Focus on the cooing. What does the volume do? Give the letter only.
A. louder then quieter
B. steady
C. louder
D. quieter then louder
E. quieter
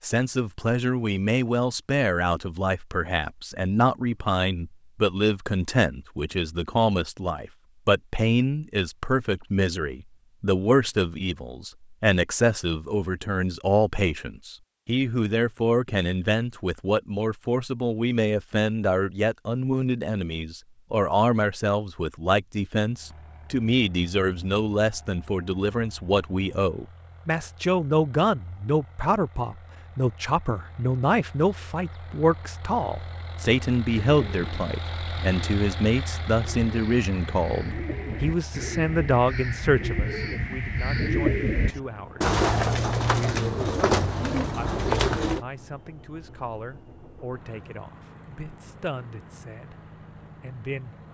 C.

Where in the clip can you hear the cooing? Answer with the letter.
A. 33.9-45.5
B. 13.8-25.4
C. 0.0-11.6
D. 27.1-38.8
A.